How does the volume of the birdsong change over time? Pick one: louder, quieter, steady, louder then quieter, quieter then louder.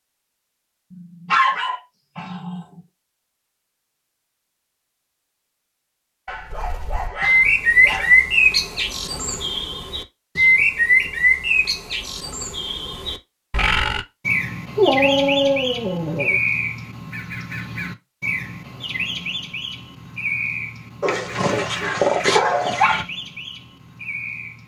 quieter.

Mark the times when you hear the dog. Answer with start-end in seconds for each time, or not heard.
0.9-2.6, 6.2-8.2, 14.8-16.4, 21.0-23.1.